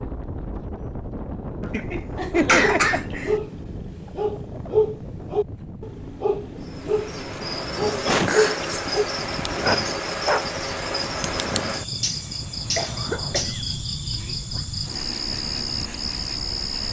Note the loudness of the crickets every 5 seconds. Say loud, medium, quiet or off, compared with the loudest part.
off, loud, loud, loud.